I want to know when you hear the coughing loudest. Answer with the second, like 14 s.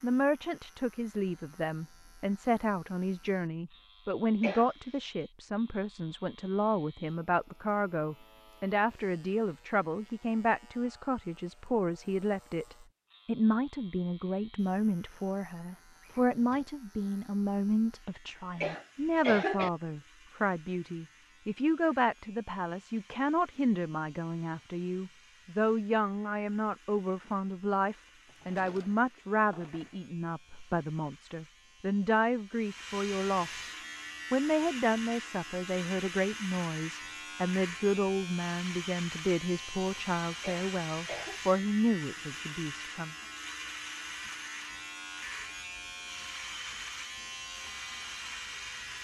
19 s.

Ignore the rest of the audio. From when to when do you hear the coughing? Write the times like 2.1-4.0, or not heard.
4.4-5.0, 18.6-19.7, 40.4-41.4.